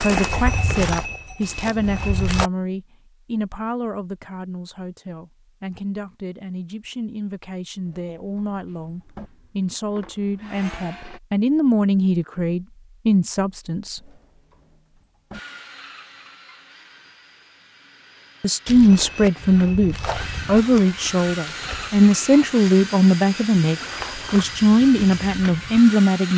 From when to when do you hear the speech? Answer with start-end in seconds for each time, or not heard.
0.0-14.0, 18.4-26.3.